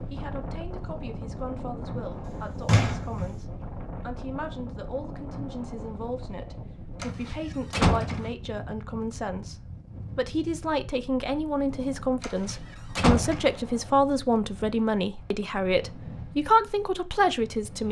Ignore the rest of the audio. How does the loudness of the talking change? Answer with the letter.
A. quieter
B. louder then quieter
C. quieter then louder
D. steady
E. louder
E.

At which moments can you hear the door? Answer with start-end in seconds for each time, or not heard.
2.2-3.4, 7.0-8.3, 12.2-13.6.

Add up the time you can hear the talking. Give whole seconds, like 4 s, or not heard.
18 s.